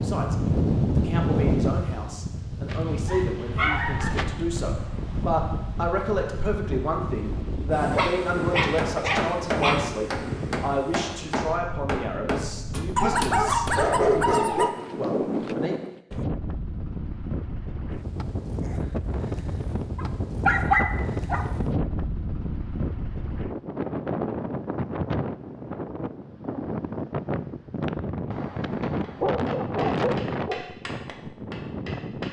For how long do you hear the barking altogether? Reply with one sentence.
You can hear the barking for 9 seconds altogether.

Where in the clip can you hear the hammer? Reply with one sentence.
The hammer can be heard from 8.8 to 13.8 s and from 28.9 to 32.2 s.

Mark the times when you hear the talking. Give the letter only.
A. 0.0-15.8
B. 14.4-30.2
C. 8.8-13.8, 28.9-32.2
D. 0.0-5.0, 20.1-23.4
A.